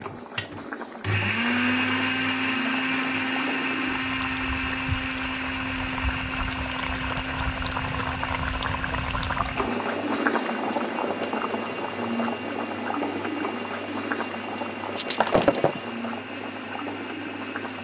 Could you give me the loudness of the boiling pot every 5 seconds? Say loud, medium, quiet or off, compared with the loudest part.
medium, loud, loud, medium.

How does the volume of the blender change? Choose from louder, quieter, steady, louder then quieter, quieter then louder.
quieter.